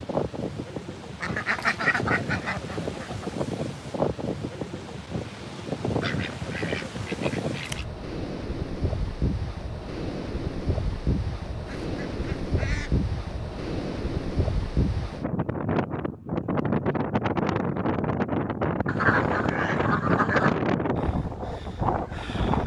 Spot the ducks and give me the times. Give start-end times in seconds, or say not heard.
1.2-3.4, 6.0-7.8, 11.7-12.9, 18.9-20.6.